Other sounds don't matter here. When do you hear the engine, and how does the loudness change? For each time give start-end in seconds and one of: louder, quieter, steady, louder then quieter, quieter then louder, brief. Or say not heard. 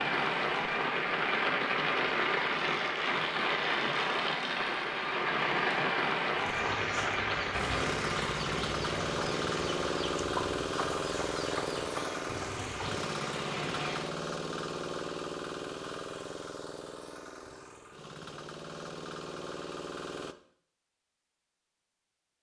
7.5-20.4 quieter.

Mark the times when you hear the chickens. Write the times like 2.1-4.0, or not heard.
6.3-13.0.